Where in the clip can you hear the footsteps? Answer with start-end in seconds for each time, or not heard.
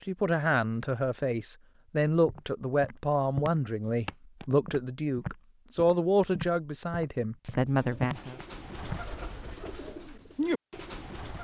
2.2-9.1.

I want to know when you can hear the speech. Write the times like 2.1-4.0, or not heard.
0.1-8.3.